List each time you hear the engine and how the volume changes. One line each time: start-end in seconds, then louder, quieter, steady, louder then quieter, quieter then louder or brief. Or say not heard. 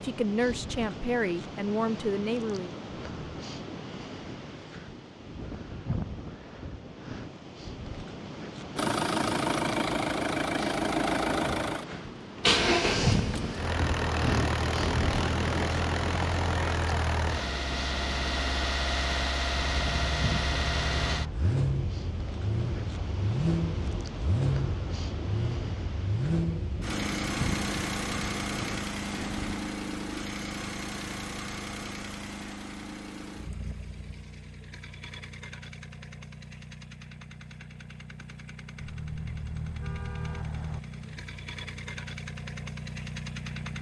8.8-43.7 quieter.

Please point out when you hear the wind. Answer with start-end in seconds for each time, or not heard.
0.0-29.6.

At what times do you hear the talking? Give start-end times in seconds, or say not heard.
0.0-2.8.